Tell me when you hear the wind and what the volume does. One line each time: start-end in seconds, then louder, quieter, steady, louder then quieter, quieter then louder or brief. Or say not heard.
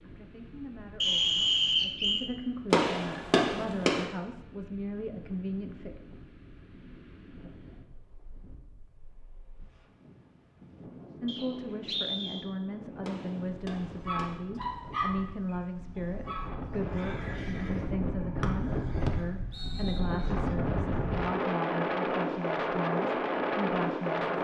0.0-24.4 louder.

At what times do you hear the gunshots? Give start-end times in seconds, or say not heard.
2.7-4.1, 13.0-14.4.